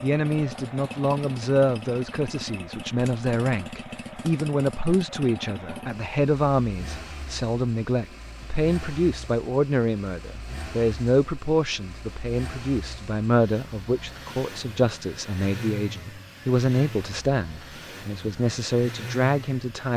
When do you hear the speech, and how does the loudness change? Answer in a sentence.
The speech can be heard from 0.0 to 19.9 s, at a steady volume.